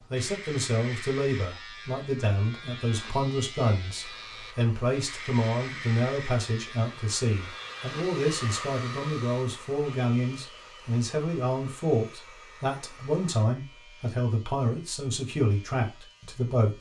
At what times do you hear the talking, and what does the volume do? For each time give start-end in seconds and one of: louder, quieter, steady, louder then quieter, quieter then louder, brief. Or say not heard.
0.1-16.7 steady.